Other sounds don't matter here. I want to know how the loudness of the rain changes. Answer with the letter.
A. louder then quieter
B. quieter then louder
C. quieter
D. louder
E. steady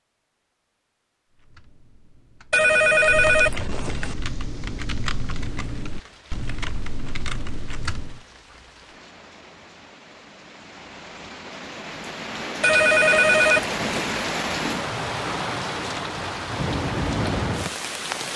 D.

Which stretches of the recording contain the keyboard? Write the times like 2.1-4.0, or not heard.
1.2-8.2.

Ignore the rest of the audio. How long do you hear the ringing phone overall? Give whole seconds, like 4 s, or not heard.
3 s.